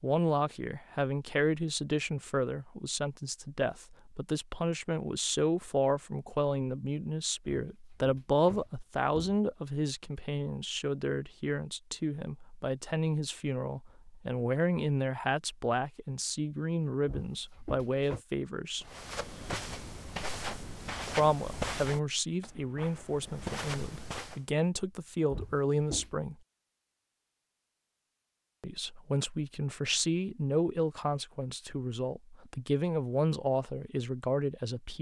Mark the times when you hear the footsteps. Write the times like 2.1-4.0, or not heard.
18.8-24.4.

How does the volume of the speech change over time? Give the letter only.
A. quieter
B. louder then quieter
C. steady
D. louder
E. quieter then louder
C.